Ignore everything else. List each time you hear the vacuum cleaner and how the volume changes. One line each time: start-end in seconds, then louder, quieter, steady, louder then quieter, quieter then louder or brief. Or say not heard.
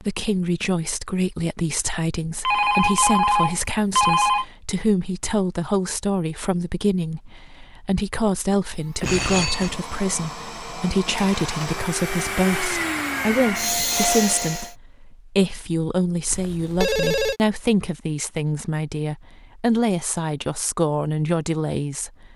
8.8-14.8 louder.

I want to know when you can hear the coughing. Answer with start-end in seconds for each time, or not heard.
not heard.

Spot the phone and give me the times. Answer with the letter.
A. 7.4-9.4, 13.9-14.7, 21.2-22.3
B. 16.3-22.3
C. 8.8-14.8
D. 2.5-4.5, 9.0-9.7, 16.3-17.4
D.